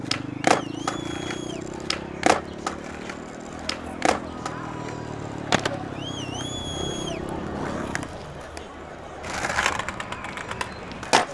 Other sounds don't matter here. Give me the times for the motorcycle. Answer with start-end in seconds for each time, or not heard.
0.0-8.1.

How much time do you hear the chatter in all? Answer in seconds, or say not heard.
11 s.